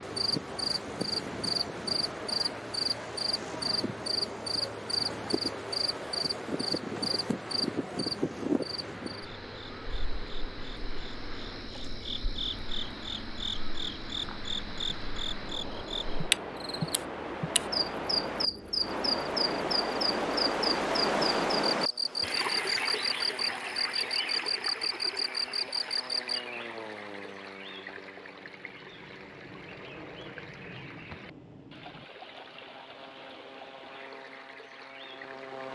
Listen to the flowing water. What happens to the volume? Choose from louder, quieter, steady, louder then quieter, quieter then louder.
louder then quieter.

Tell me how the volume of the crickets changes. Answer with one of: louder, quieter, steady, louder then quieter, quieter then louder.
quieter then louder.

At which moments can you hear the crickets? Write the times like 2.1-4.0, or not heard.
0.0-26.4.